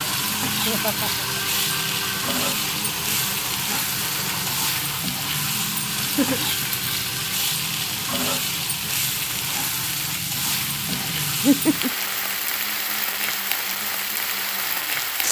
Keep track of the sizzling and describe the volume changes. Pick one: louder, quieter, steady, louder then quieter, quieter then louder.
steady.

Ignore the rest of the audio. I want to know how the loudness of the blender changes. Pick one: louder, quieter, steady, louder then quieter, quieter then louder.
quieter.